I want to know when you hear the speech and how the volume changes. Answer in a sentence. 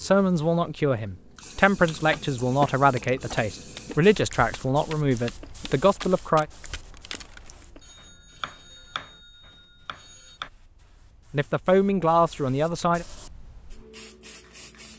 You can hear the speech from 0.0 to 6.5 s, at a steady volume; and briefly from 11.3 to 13.1 s.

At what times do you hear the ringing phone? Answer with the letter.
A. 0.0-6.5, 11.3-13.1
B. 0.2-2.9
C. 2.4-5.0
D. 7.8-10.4
D.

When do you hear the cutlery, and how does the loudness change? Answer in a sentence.
You can't hear the cutlery here.